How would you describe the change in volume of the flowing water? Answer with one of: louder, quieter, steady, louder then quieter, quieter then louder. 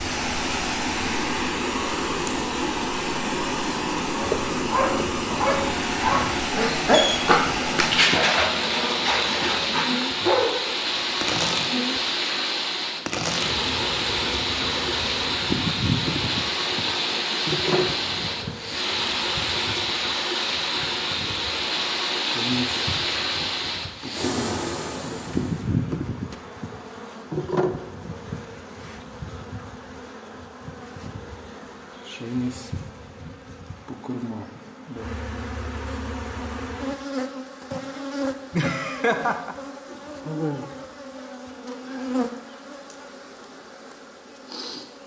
steady.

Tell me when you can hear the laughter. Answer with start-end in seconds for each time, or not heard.
38.5-39.5.